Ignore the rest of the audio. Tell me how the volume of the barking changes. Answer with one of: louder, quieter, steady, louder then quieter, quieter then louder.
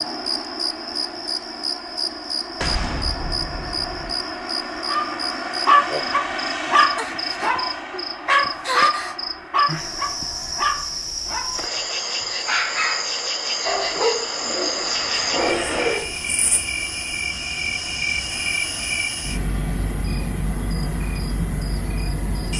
quieter.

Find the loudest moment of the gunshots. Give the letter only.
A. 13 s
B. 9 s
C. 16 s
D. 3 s
D.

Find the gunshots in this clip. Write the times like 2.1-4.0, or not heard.
2.6-4.2.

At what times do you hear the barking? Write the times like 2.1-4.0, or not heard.
4.8-11.6, 12.2-16.1.